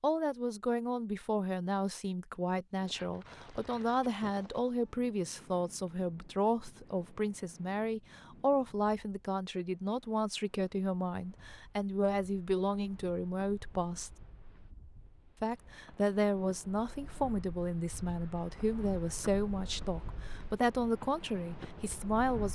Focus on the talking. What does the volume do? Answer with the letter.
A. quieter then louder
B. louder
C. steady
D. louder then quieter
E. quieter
C.